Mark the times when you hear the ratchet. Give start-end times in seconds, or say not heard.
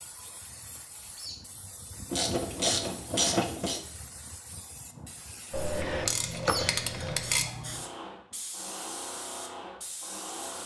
2.1-3.8, 5.5-7.5.